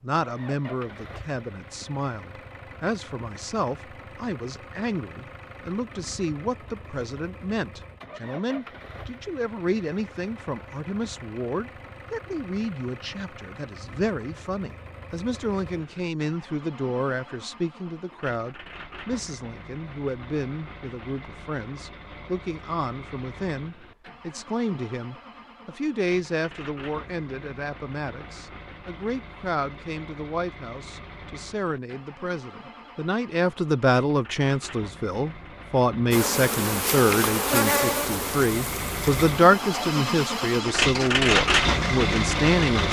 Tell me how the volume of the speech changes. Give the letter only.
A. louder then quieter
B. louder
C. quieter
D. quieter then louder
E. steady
B.